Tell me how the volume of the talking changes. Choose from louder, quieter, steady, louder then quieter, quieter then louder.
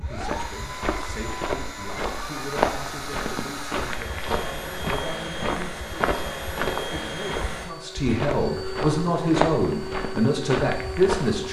louder.